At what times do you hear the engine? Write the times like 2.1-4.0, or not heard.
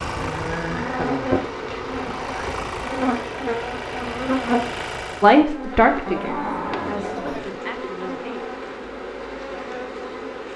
0.0-5.5.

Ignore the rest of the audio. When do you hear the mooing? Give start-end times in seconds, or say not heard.
6.0-7.5.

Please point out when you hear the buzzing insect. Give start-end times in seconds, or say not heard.
0.0-10.5.